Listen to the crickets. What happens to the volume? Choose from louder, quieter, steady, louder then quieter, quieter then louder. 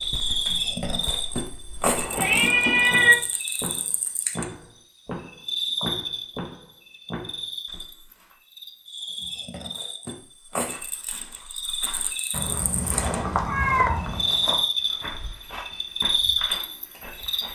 quieter then louder.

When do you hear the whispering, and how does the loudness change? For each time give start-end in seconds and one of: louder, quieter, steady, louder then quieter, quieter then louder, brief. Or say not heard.
not heard.